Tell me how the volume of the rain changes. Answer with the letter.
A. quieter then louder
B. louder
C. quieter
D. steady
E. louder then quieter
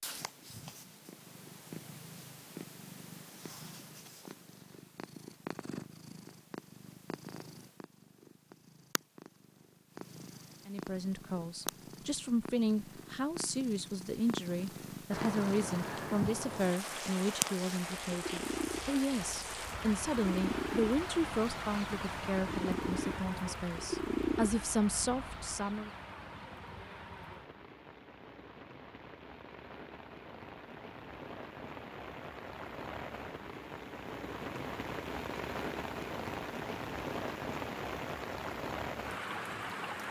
A.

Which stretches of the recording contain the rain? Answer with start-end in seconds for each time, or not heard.
15.1-40.0.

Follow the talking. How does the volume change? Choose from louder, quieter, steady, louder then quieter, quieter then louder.
steady.